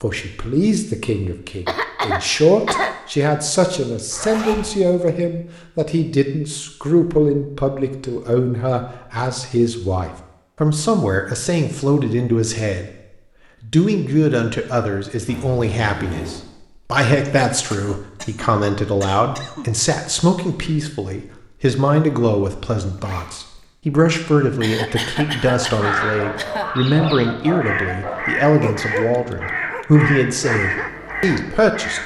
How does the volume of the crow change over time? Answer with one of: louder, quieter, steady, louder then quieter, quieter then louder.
steady.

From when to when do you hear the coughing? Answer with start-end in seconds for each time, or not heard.
1.6-3.0, 17.2-19.7, 24.6-26.8.